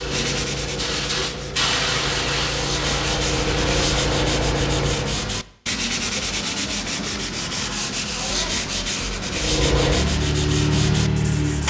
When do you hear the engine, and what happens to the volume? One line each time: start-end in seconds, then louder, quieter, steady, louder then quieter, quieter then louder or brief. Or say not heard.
0.0-5.3 louder
9.2-11.6 brief.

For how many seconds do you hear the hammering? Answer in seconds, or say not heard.
not heard.